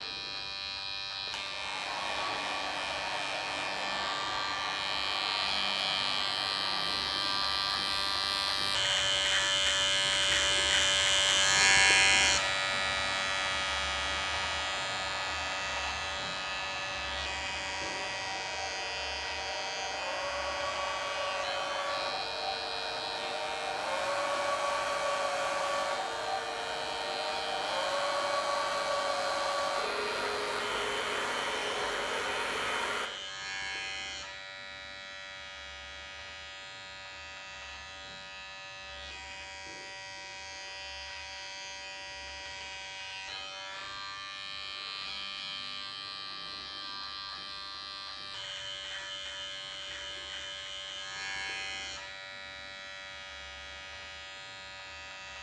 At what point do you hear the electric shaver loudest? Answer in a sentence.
The volume of the electric shaver peaks at 12 seconds.